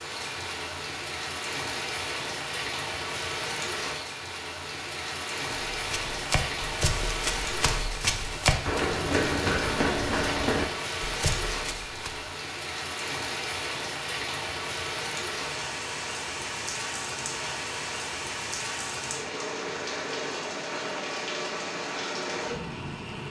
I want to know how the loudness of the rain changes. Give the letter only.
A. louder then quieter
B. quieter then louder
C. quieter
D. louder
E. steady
E.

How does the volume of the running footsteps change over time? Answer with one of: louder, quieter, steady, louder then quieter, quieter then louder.
louder then quieter.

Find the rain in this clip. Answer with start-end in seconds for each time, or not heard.
0.0-23.2.